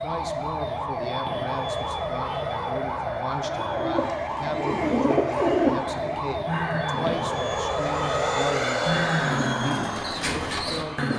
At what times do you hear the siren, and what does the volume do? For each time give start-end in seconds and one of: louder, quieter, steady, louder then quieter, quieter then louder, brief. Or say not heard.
0.0-8.4 steady.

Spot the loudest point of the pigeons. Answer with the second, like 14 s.
6 s.